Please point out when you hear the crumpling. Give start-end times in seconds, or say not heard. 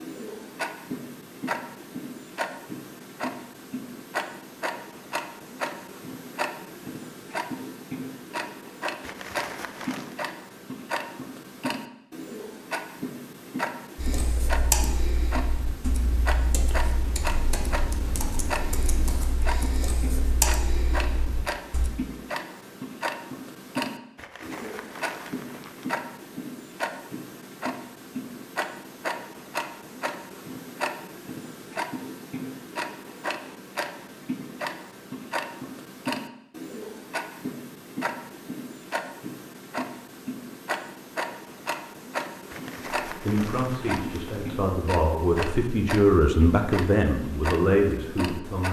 9.0-10.2, 24.1-26.1, 42.5-44.5.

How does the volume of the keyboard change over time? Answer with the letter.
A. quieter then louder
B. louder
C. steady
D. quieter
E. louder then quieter
A.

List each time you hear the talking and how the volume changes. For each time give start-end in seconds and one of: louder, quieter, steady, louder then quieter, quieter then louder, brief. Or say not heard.
43.2-48.6 louder.